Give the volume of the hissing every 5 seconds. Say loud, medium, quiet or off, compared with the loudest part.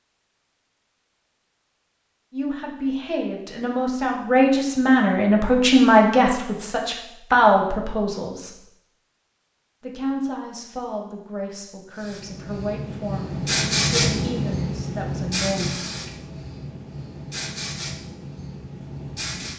off, off, loud, medium.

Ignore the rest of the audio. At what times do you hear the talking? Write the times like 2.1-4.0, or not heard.
2.3-8.6, 9.8-15.8.